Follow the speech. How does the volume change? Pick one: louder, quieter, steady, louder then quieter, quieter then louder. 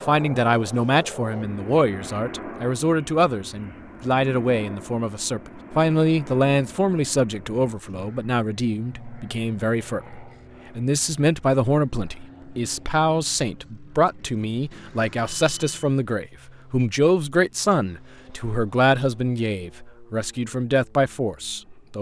steady.